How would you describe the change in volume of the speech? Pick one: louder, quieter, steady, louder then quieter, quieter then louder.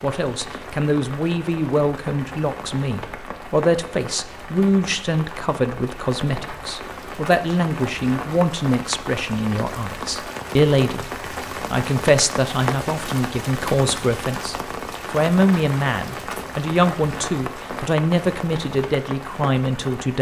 steady.